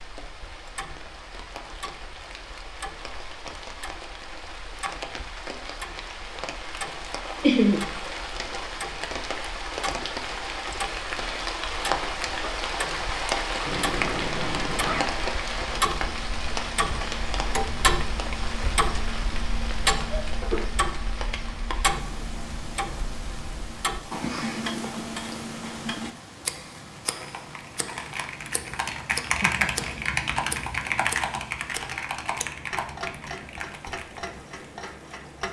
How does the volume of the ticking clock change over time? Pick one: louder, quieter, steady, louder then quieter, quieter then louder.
louder then quieter.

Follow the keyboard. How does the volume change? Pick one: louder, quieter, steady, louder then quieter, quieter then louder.
louder then quieter.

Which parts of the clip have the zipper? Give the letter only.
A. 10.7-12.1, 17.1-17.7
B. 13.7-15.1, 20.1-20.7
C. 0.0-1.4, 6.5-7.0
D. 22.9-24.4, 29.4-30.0
B.